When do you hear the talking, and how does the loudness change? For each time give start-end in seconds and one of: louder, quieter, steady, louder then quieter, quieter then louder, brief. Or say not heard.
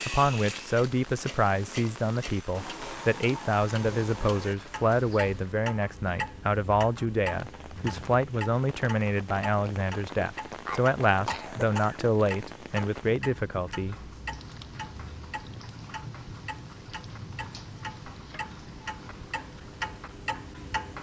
0.1-13.9 steady.